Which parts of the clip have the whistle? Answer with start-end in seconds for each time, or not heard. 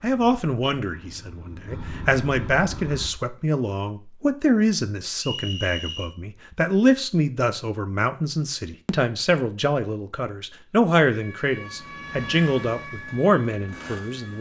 5.2-6.1.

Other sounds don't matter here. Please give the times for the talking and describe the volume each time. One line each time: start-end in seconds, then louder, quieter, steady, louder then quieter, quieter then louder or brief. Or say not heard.
0.0-14.3 steady.